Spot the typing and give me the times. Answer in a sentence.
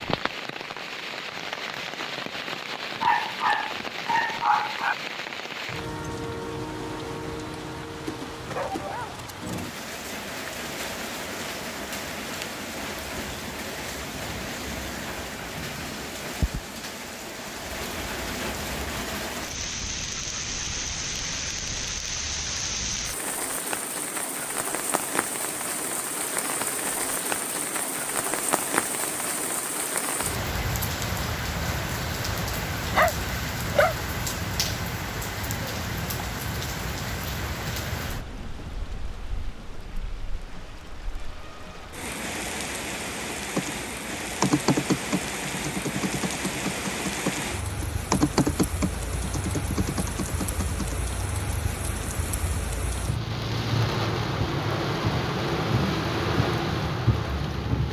The typing can be heard from 43.5 to 51.0 s.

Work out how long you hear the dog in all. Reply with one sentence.
The dog can be heard for 4 seconds in total.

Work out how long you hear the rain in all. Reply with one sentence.
You can hear the rain for 58 seconds altogether.